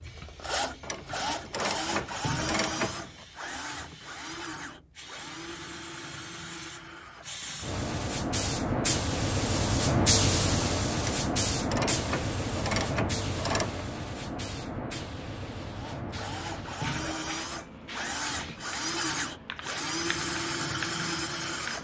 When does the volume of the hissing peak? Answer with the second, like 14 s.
10 s.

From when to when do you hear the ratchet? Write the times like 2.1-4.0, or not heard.
0.8-3.2, 11.0-13.8.